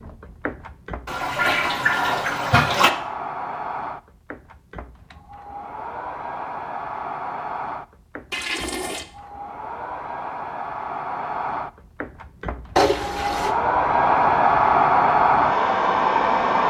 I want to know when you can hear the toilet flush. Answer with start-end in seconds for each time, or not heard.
1.1-2.9, 8.3-9.1, 12.8-13.6.